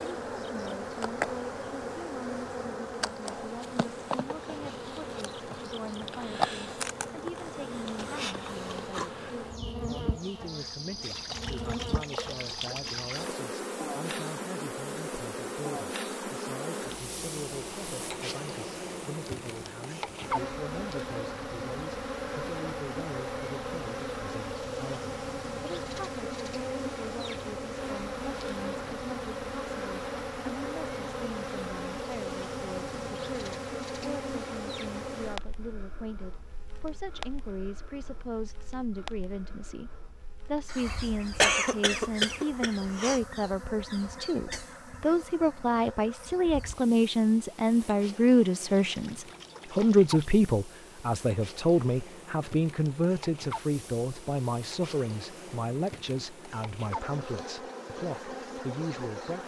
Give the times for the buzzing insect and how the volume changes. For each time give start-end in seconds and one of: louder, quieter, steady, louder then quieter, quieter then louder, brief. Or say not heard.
0.0-59.4 quieter.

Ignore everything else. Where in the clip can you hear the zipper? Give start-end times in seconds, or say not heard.
not heard.